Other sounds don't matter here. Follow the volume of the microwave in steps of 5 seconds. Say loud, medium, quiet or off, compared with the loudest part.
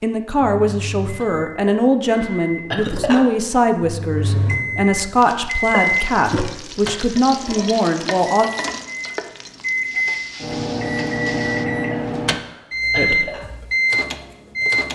medium, loud, loud.